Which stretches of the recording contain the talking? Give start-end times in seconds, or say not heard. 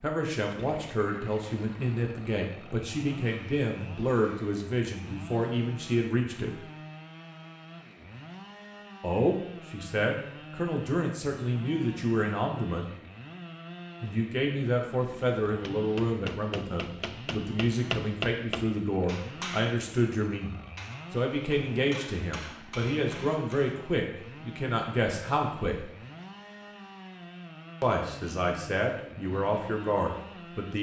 0.0-6.6, 9.0-12.9, 14.0-25.9, 27.8-30.7.